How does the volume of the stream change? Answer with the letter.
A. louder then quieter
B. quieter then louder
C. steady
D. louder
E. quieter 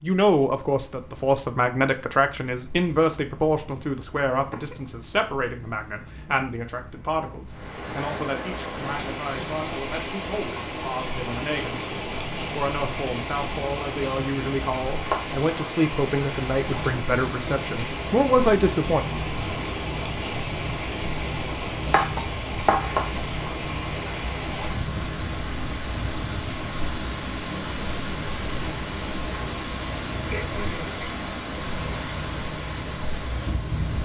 C.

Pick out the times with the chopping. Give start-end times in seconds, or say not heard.
21.9-22.9.